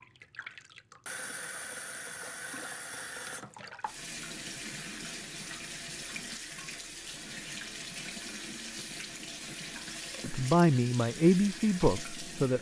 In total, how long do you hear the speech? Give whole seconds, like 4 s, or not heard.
2 s.